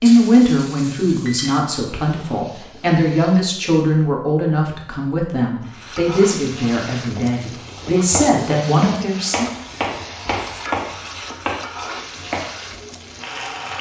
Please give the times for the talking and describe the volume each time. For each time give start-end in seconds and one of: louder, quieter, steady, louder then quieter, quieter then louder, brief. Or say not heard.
0.0-9.5 steady.